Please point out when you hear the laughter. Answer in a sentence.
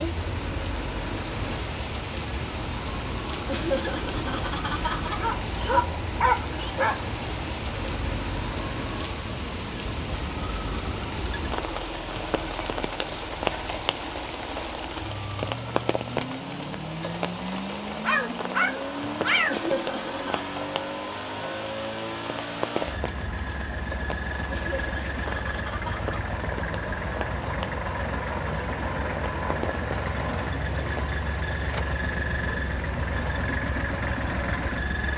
You can hear the laughter from 3.5 to 5.2 s, from 19.4 to 20.5 s and from 24.4 to 26.1 s.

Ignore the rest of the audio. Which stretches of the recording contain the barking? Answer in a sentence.
You can hear the barking from 5.2 to 7.1 s and from 18.0 to 19.6 s.